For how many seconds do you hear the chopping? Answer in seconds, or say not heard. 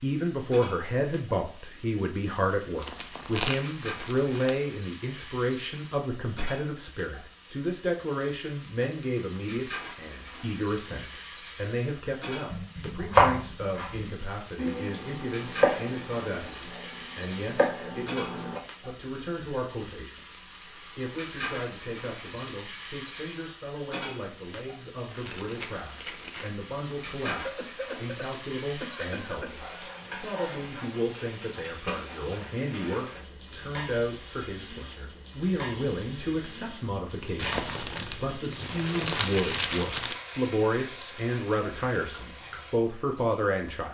6 s.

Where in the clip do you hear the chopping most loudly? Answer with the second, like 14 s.
13 s.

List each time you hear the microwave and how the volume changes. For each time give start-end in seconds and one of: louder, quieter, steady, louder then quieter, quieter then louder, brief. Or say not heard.
not heard.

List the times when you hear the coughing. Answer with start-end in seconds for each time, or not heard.
27.3-29.6.